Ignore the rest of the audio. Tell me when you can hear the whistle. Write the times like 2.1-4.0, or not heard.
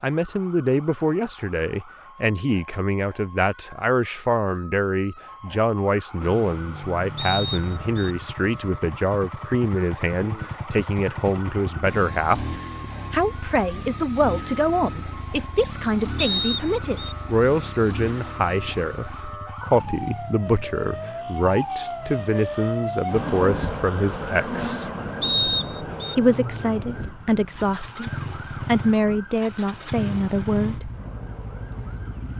7.2-8.2, 16.1-17.1, 25.2-26.1.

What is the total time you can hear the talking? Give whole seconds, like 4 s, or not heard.
30 s.